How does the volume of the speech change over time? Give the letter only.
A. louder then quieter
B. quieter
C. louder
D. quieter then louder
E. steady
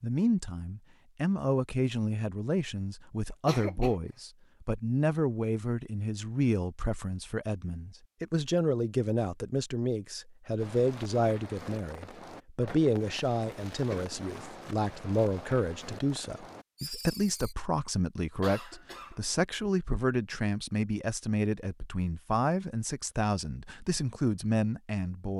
E.